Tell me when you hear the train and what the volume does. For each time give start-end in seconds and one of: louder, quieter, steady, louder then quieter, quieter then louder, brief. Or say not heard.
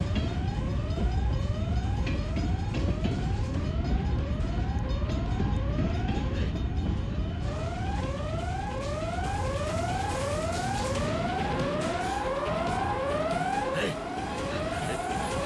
0.0-15.4 quieter.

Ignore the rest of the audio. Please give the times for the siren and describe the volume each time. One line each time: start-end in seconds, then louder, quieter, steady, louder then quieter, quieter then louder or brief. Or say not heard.
0.0-15.4 louder.